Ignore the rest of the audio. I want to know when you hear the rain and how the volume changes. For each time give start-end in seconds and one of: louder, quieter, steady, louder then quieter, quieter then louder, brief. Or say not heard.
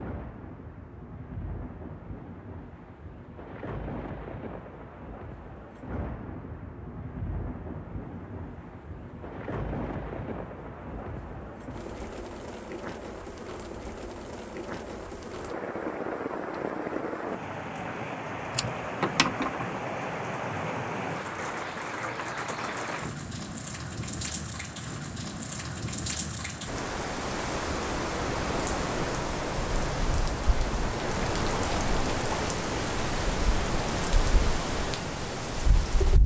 0.0-36.2 louder.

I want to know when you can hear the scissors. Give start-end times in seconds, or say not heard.
18.5-19.8.